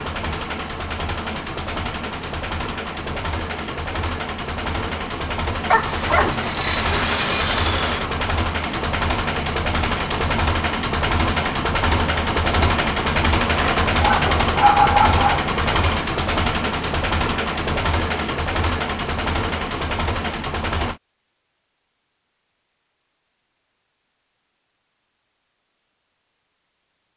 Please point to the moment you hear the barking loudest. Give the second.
15 s.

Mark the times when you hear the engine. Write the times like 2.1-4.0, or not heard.
0.0-21.0.